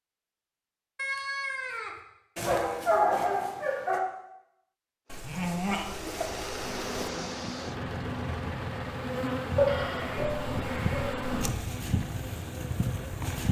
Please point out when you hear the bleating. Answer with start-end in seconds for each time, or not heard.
0.9-2.0, 5.1-7.1, 9.7-11.1.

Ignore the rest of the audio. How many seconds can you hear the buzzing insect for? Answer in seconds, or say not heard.
7 s.